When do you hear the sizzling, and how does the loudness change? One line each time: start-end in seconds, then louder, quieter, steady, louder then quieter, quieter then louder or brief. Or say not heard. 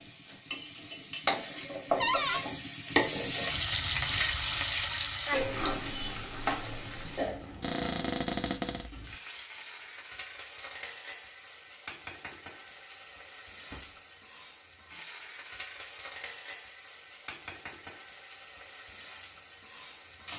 0.0-20.3 quieter.